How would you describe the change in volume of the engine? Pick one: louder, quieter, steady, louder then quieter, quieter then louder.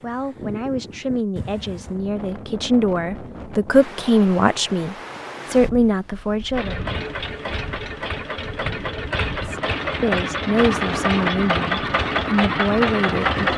louder.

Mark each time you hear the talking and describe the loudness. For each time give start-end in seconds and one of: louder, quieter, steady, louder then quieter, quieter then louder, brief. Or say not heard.
0.0-6.8 louder
9.3-13.5 steady.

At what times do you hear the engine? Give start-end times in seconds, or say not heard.
6.5-13.5.